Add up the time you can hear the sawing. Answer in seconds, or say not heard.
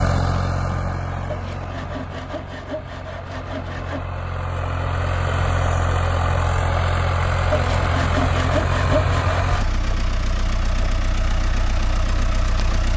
5 s.